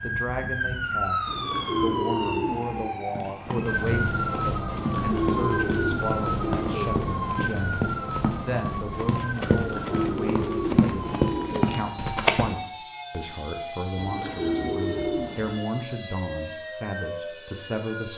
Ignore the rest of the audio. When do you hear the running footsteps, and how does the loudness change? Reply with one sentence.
The running footsteps can be heard from 3.0 to 12.5 s, getting louder.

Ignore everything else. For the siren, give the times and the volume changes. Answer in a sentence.
You can hear the siren from 0.0 to 18.1 s, getting quieter.